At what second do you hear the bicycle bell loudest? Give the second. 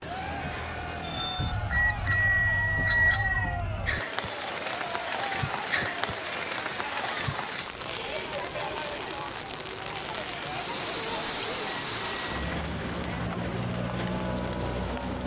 3 s.